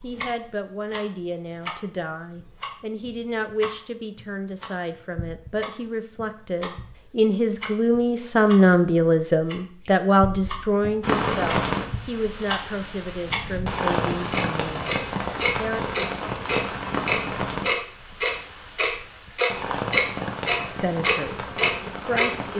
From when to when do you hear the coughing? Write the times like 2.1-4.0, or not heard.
not heard.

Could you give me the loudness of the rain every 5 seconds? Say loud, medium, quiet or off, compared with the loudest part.
off, off, loud, loud, medium.